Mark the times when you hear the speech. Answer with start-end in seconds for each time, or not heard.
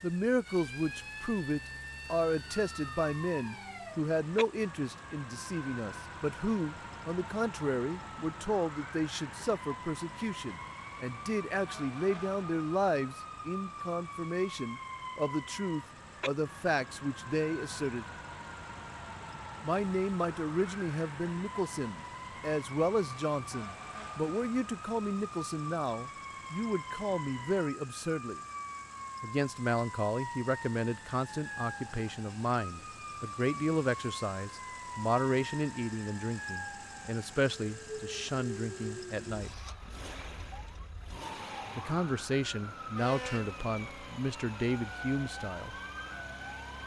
0.0-18.1, 19.6-28.4, 29.2-39.6, 41.8-45.8.